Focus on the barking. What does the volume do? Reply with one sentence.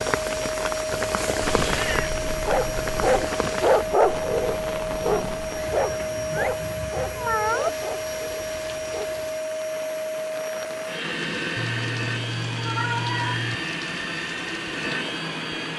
The volume of the barking goes down.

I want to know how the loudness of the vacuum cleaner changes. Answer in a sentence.
The loudness of the vacuum cleaner stays about the same.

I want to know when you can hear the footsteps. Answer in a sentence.
You can't hear the footsteps here.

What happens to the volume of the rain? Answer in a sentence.
The loudness of the rain goes down.